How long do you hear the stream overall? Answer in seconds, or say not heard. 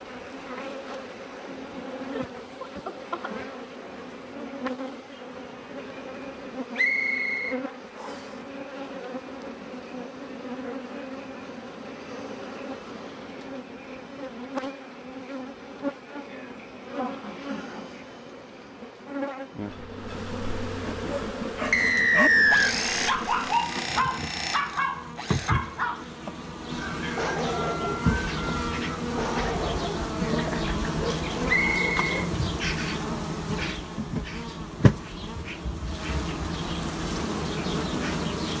not heard.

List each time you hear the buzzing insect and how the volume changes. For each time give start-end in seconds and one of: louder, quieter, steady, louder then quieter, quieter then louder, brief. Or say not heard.
0.0-38.5 louder.